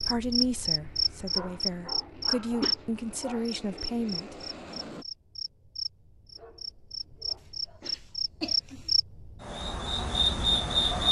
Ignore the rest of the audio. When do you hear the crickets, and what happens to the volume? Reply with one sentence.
The crickets can be heard from 0.0 to 11.0 s, getting quieter then louder.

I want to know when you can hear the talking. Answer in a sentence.
You can hear the talking from 0.0 to 4.3 s.